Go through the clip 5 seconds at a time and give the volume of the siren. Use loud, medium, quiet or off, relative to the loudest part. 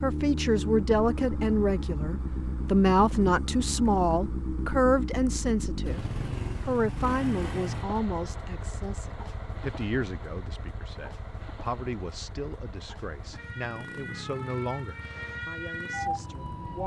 off, off, medium, loud.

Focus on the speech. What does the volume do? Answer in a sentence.
The volume of the speech goes down.